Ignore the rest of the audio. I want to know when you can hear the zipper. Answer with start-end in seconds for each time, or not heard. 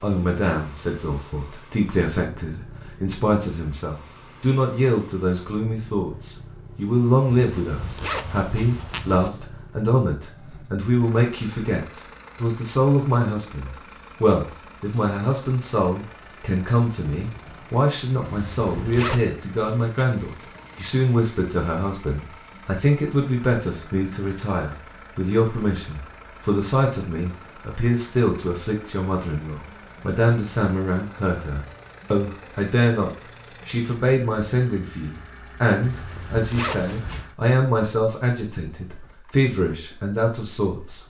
7.3-9.3, 18.2-19.2, 35.8-37.2.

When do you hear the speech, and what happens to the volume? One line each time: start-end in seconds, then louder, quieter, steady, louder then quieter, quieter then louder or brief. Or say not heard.
0.0-41.0 steady.